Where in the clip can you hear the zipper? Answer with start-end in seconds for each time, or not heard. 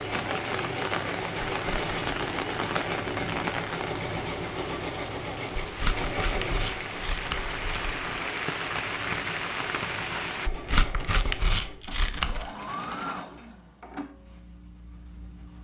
not heard.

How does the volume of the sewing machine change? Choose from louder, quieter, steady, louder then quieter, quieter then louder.
quieter.